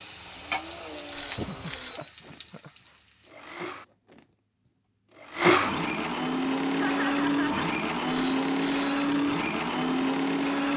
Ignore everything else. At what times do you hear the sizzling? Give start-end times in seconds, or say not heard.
0.0-3.4.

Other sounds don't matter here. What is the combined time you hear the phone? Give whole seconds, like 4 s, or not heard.
2 s.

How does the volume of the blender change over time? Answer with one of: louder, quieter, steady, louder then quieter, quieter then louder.
louder.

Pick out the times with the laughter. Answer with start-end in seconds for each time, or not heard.
1.3-2.9, 6.7-7.5.